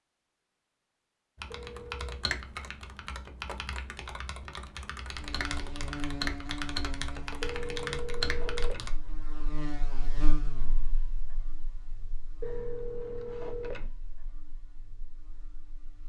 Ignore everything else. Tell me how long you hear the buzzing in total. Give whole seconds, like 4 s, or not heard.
11 s.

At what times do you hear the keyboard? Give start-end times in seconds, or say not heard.
1.4-8.9.